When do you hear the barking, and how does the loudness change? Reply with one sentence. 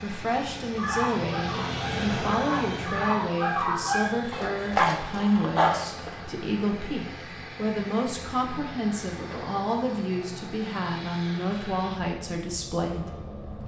The barking can be heard from 0.8 to 6.2 s, getting louder.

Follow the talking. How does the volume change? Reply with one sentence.
The volume of the talking stays about the same.